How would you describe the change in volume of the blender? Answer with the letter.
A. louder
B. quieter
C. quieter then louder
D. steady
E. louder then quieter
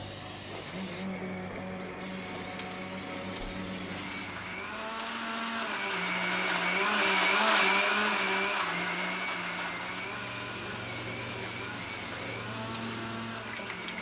E.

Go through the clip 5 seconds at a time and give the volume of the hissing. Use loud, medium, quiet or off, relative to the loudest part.
loud, medium, loud.